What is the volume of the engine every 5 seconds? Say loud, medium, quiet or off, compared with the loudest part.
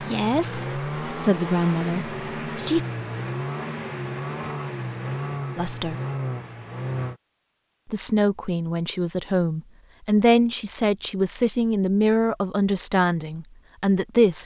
loud, loud, off.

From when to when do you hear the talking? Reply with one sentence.
You can hear the talking from 0.0 to 2.8 s, from 5.5 to 6.0 s and from 7.8 to 14.4 s.